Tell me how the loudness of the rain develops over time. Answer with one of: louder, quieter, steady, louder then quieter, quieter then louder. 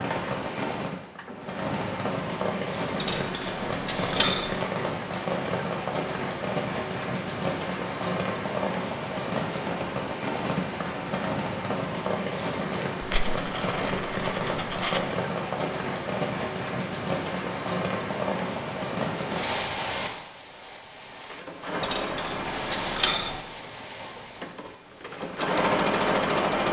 quieter.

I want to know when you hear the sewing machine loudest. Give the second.
26 s.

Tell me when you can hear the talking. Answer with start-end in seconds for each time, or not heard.
not heard.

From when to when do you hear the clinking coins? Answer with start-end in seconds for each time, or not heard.
3.0-4.5, 13.0-15.0, 21.8-23.4.